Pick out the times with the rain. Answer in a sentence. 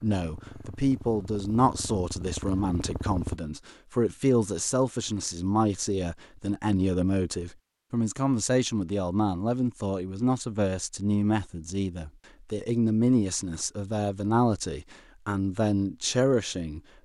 You can't hear the rain here.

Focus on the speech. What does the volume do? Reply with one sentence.
The loudness of the speech stays about the same.